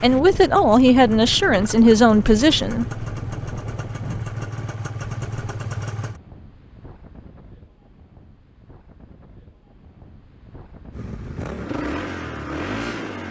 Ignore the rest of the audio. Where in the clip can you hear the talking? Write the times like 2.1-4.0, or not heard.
0.0-2.9.